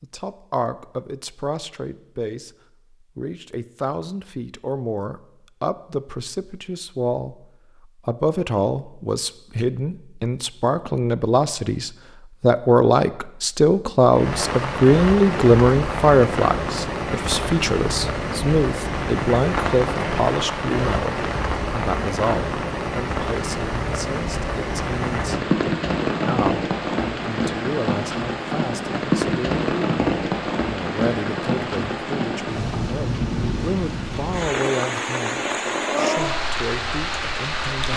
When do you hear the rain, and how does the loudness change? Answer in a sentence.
You can hear the rain from 14.1 to 37.9 s, at a steady volume.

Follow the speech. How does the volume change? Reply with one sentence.
The loudness of the speech goes up, then down.